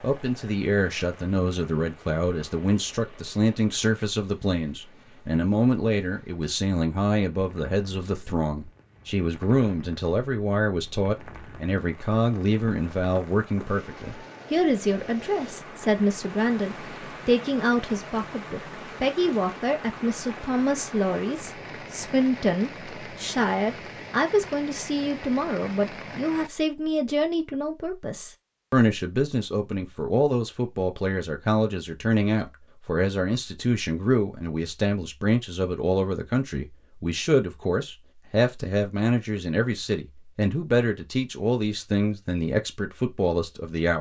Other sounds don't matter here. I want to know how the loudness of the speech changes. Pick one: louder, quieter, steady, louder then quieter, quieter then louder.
steady.